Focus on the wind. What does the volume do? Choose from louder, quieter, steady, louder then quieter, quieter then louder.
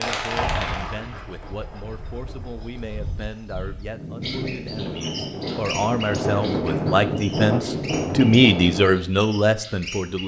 louder.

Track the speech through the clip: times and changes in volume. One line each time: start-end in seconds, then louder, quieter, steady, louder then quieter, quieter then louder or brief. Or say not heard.
0.0-10.2 louder.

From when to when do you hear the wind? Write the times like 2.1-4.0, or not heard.
0.2-9.0.